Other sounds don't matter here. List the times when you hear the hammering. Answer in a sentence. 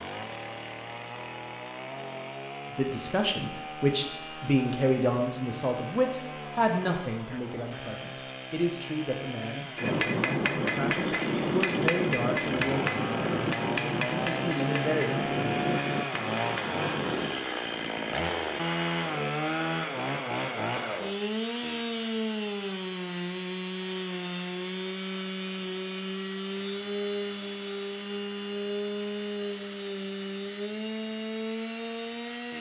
You can hear the hammering from 9.8 to 17.4 s.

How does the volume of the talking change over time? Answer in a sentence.
The loudness of the talking goes down.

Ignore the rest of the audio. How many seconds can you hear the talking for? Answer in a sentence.
You can hear the talking for 13 seconds altogether.